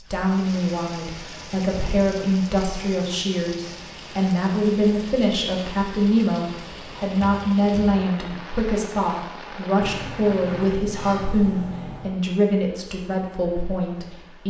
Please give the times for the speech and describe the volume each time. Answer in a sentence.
You can hear the speech from 0.0 to 14.4 s, at a steady volume.